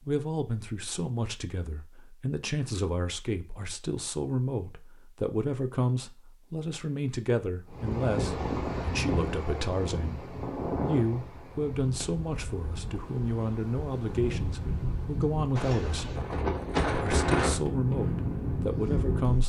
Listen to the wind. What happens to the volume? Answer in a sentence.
The volume of the wind goes down, then up.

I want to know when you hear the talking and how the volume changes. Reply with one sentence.
The talking can be heard from 0.1 to 16.1 s, at a steady volume; and briefly from 16.9 to 19.4 s.